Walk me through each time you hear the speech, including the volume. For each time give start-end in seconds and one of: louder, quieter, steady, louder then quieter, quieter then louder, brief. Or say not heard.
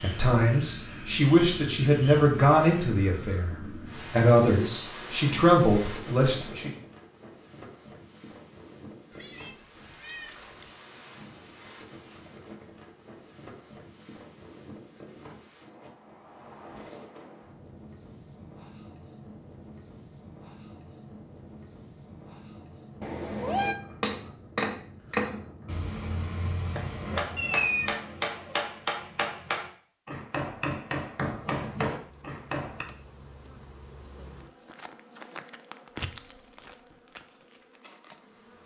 0.0-6.7 quieter then louder.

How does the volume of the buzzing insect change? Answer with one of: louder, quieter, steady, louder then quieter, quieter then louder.
louder then quieter.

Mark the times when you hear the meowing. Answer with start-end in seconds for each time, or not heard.
9.1-10.7, 23.0-23.8, 27.4-28.0.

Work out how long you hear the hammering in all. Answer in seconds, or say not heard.
9 s.